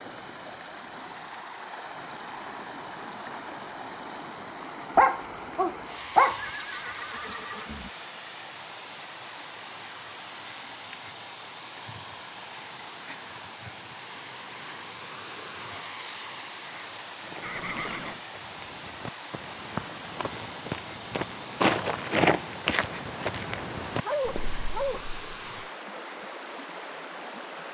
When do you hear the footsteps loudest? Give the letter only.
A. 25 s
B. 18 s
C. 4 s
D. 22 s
D.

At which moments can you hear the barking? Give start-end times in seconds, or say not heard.
5.0-6.4, 24.0-25.1.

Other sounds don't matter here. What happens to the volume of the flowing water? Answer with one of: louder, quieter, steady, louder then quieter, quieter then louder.
steady.